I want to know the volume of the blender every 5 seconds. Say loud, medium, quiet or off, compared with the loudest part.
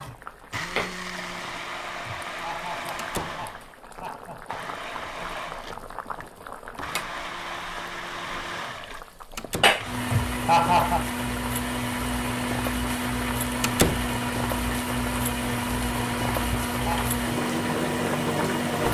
medium, medium, loud, loud.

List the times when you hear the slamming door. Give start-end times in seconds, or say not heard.
3.0-3.4, 9.3-9.8, 13.6-14.1.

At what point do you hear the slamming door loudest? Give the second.
14 s.